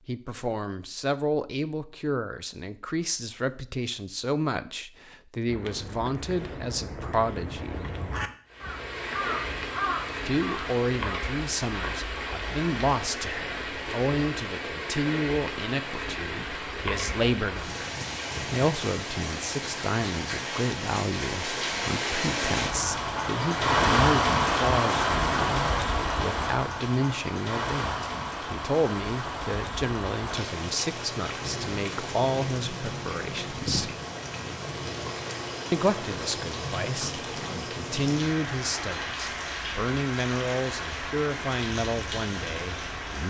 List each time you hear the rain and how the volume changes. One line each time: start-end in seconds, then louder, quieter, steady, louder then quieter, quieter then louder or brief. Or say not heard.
8.4-43.2 louder then quieter.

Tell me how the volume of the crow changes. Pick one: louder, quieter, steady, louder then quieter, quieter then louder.
louder.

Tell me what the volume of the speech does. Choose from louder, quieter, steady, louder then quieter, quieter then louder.
steady.